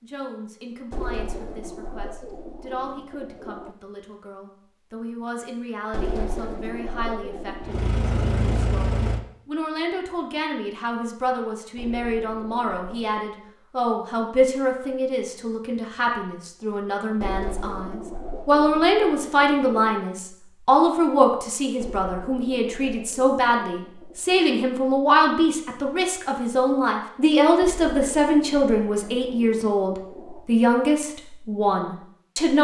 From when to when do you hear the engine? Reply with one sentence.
You can hear the engine from 7.6 to 9.2 s.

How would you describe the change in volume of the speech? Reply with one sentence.
The loudness of the speech goes up.